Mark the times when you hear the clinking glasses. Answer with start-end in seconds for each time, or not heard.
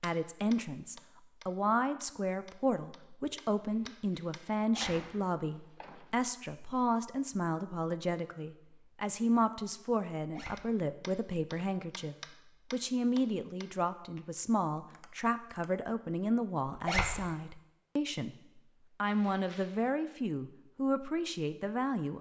not heard.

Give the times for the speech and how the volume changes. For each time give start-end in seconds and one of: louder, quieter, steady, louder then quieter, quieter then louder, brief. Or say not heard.
0.0-22.1 steady.